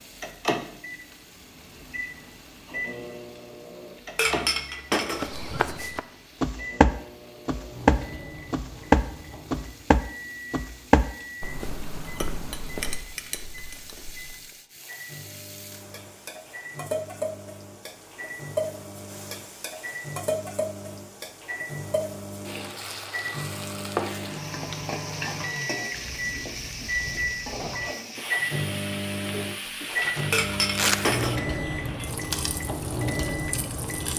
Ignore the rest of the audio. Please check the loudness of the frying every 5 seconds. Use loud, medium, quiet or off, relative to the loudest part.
quiet, quiet, quiet, loud, loud, loud, loud.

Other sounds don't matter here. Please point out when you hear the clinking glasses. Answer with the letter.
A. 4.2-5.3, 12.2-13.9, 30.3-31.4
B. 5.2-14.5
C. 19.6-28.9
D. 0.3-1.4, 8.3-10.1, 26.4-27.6
A.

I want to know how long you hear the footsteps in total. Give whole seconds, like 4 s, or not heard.
9 s.